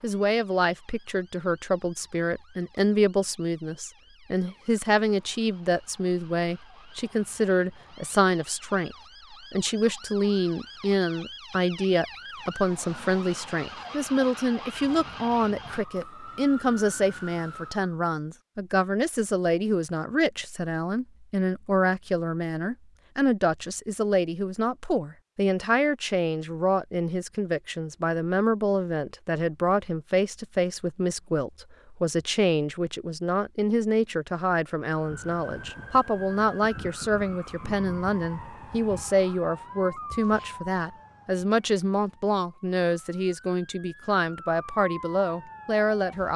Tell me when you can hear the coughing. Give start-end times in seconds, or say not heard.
not heard.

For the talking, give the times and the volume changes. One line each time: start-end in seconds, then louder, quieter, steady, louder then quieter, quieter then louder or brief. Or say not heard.
0.0-46.3 steady.